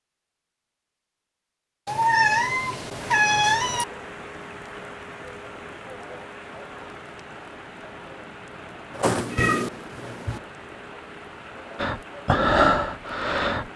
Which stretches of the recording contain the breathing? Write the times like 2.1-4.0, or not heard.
11.8-13.7.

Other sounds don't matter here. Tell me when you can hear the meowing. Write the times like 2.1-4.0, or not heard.
1.9-3.9, 8.9-10.4.